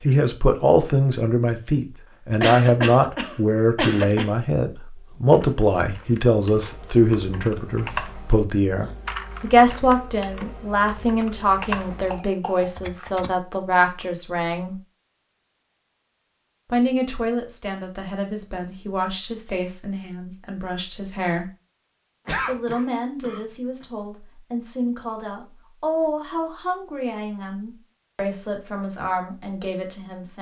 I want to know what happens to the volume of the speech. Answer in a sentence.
The loudness of the speech goes down.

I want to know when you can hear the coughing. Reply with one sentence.
You can hear the coughing from 2.4 to 4.3 s, from 11.9 to 13.2 s and from 22.2 to 23.4 s.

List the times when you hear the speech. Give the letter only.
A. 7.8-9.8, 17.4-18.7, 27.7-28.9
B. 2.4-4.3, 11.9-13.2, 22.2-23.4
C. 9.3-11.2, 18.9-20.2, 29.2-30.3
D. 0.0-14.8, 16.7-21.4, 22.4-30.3
D.